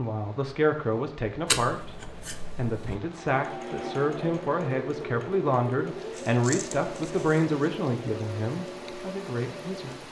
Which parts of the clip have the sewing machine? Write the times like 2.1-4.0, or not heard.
3.1-10.0.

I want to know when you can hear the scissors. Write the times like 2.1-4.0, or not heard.
1.4-3.0, 6.1-7.5.